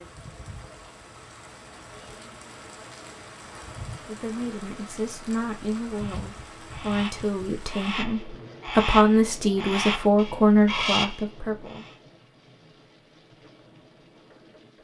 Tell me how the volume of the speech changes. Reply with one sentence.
The loudness of the speech goes up.